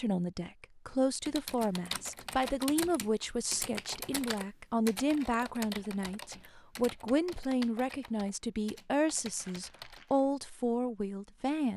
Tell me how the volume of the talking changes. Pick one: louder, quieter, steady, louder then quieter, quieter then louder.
steady.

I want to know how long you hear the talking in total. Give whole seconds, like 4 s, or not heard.
12 s.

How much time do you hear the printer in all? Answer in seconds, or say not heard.
not heard.